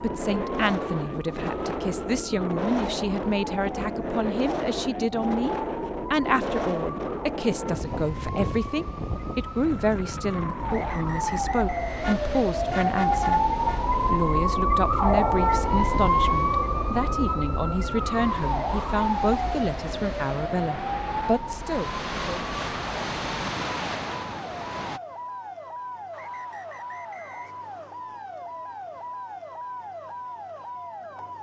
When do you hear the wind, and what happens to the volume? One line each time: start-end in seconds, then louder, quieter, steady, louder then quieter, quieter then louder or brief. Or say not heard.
0.0-25.0 quieter then louder.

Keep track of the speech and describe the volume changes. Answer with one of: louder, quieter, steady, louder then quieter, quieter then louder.
steady.